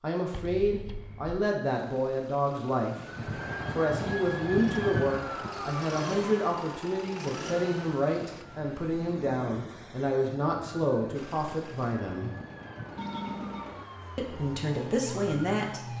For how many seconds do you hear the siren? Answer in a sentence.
You can hear the siren for 13 seconds altogether.